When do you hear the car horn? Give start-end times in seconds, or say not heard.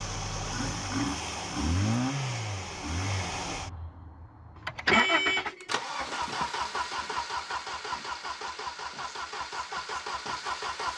4.9-5.7.